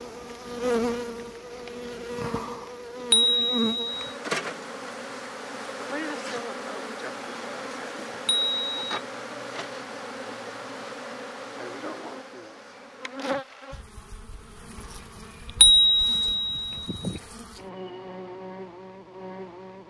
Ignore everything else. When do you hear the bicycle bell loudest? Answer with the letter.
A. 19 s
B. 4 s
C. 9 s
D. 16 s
D.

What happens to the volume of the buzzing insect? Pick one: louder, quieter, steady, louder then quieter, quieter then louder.
quieter.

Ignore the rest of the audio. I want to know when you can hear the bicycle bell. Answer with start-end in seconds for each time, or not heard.
3.1-4.1, 8.2-9.0, 15.6-17.1.